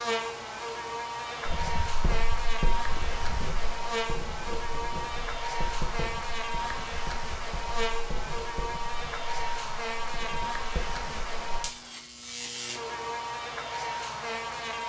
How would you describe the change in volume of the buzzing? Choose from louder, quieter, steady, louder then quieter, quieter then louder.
steady.